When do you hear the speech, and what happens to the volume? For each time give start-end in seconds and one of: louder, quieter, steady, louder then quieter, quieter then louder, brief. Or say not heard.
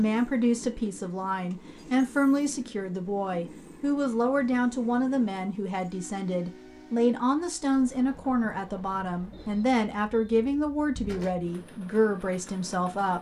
0.0-13.1 steady.